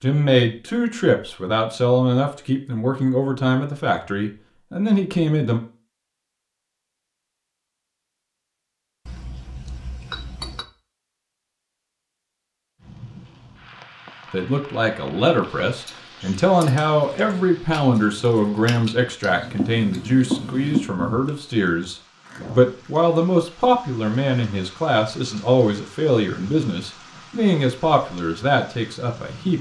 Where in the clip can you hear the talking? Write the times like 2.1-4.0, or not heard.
0.0-5.6, 14.3-29.5.